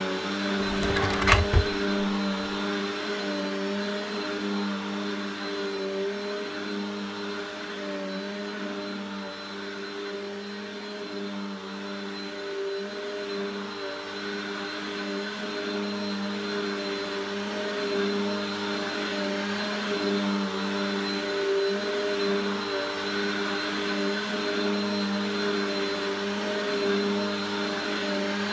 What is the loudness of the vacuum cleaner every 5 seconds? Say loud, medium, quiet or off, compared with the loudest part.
loud, medium, medium, loud, loud, loud.